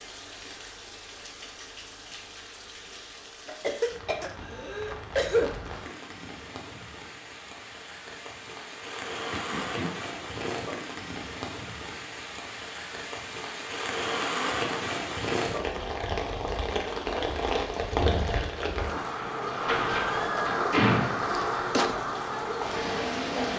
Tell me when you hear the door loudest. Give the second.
21 s.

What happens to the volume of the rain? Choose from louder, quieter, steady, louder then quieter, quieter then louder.
louder.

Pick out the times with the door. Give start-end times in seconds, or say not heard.
19.6-21.4.